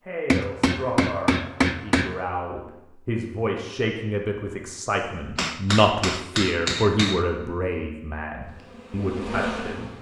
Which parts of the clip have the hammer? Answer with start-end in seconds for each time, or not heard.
0.3-2.2, 5.3-7.2.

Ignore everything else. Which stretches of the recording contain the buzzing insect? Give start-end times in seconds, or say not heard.
8.4-9.9.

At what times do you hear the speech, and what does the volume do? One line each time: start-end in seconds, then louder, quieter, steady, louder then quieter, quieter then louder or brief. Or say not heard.
0.1-9.9 louder then quieter.